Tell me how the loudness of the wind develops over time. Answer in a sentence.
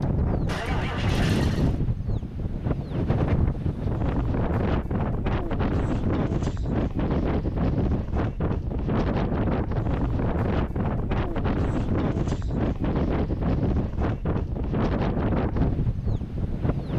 The volume of the wind stays about the same.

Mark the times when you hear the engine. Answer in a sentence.
The engine can be heard from 0.0 to 1.8 s.